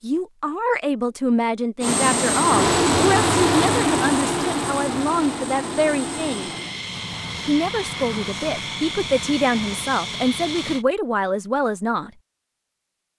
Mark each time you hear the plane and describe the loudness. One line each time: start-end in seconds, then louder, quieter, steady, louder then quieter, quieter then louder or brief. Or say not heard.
1.8-10.8 quieter.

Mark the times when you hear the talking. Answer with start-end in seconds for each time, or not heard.
0.0-6.5, 7.5-12.1.